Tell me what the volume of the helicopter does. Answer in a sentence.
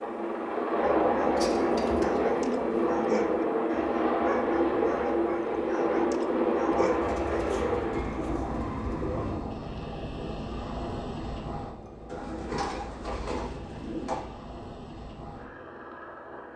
The volume of the helicopter goes down.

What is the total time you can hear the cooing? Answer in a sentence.
You can hear the cooing for 7 seconds altogether.